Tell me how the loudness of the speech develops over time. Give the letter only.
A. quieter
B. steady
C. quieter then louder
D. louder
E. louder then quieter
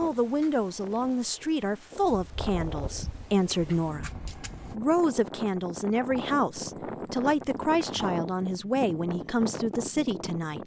B.